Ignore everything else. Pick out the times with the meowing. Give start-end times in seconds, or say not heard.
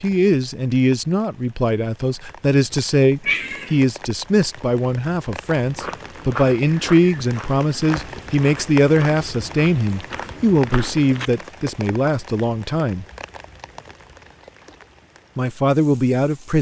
3.2-3.8.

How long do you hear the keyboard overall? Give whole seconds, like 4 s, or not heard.
not heard.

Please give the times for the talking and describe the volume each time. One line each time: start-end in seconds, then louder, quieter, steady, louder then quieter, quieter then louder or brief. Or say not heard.
0.0-13.1 steady
15.3-16.5 brief.